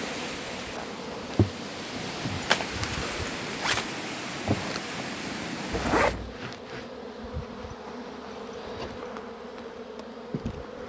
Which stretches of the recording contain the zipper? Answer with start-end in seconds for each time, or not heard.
2.4-3.9, 5.7-6.3.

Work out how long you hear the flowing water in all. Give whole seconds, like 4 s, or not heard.
6 s.